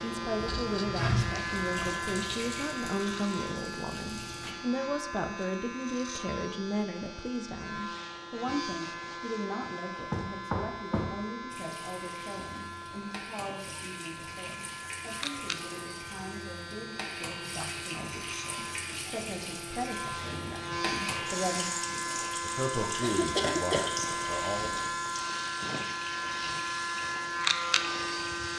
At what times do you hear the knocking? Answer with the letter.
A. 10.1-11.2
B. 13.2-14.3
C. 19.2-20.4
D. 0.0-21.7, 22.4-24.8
A.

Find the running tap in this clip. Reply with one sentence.
The running tap can be heard from 0.0 to 4.5 s and from 11.5 to 28.5 s.